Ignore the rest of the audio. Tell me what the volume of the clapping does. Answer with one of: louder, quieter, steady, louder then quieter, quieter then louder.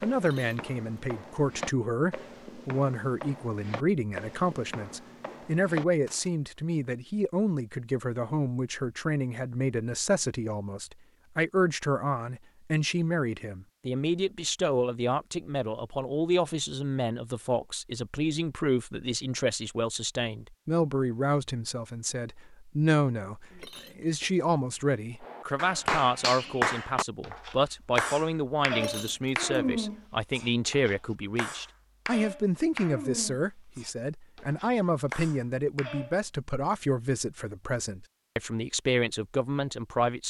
quieter.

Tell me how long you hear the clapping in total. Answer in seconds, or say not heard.
11 s.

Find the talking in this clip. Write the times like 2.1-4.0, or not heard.
0.0-40.2.